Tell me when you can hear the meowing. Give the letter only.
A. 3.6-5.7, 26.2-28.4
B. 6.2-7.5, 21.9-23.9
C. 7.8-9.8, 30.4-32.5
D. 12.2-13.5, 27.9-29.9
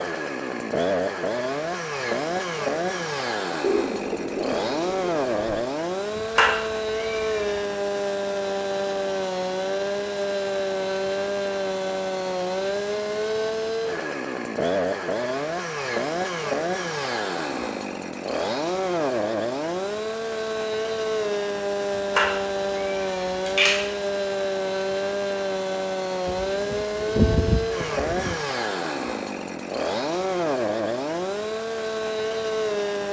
B.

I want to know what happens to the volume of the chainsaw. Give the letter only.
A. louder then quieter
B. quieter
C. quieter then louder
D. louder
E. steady
E.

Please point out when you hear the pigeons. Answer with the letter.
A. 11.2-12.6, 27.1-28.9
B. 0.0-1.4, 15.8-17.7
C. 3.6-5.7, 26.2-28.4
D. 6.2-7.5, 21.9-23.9
C.